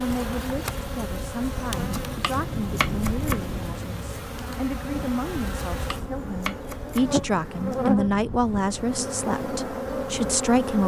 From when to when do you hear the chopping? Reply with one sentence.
The chopping can be heard from 1.9 to 3.5 s and from 5.8 to 7.1 s.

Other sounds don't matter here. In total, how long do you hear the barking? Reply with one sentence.
The barking can't be heard in this clip.